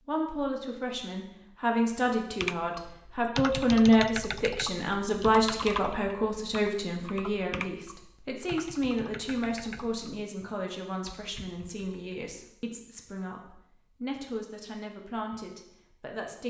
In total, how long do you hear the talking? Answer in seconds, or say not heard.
16 s.